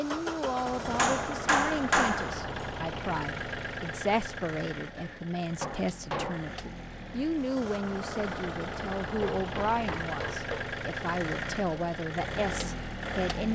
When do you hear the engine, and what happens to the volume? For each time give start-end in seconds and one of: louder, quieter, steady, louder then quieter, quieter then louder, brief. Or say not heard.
0.0-13.4 quieter then louder.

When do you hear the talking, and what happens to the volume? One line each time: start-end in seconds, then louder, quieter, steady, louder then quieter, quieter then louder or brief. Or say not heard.
0.0-13.4 steady.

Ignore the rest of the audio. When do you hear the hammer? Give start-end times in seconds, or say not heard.
0.9-2.5, 5.0-6.5, 9.2-10.8.